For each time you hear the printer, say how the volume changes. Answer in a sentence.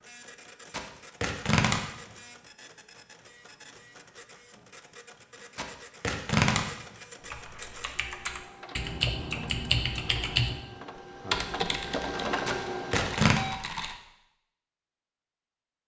You can hear the printer from 0.0 to 13.6 s, getting louder.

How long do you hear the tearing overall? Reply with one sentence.
You can hear the tearing for 3 seconds altogether.